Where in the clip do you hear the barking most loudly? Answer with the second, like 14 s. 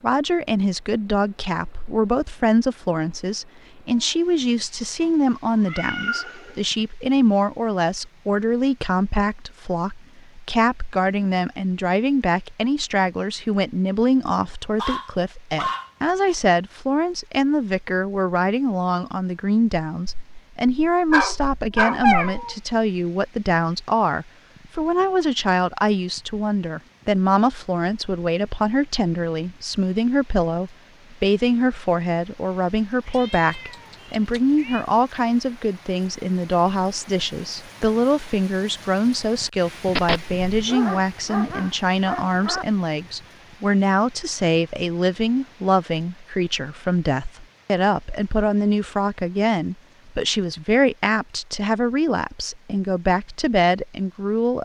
22 s.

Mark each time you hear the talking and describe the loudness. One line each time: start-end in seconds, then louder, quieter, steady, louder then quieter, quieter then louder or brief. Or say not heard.
0.0-54.6 steady.